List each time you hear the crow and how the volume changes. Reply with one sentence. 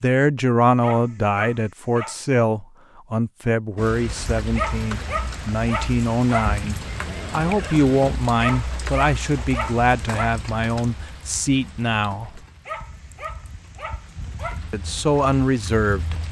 The crow can't be heard in this clip.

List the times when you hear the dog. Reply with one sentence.
You can hear the dog from 0.8 to 2.2 s, from 4.5 to 6.5 s, from 8.4 to 10.3 s and from 12.7 to 14.6 s.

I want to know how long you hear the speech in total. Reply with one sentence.
You can hear the speech for 14 seconds altogether.